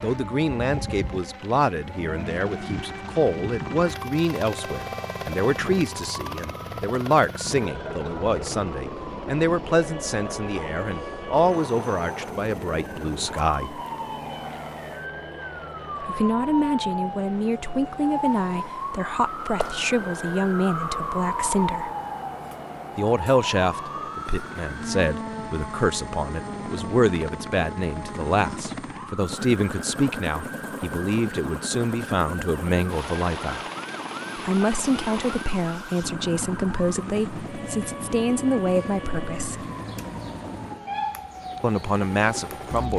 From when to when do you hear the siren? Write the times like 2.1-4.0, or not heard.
0.0-42.9.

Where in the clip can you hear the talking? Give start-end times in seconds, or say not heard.
0.0-13.8, 16.0-21.9, 22.9-33.6, 34.4-39.6, 41.6-42.9.